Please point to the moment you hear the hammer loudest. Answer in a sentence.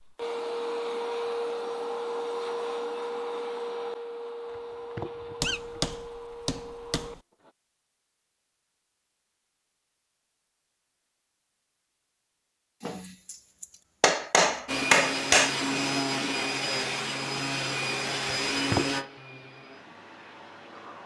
The loudest moment of the hammer is at 15 seconds.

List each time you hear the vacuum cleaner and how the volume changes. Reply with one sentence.
You can hear the vacuum cleaner from 0.0 to 7.5 s, getting quieter; and from 14.7 to 21.0 s, getting quieter.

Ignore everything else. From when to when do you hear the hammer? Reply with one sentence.
You can hear the hammer from 5.4 to 7.2 s and from 12.8 to 15.6 s.